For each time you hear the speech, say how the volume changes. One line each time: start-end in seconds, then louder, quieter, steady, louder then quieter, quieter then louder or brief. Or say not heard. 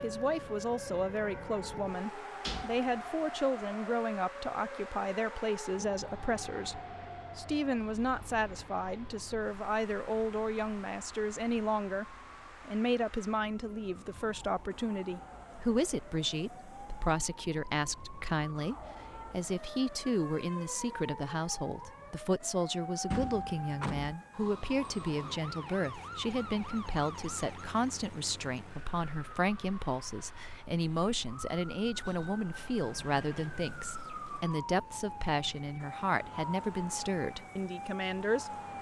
0.0-38.5 steady.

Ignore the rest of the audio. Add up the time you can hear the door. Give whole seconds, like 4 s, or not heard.
3 s.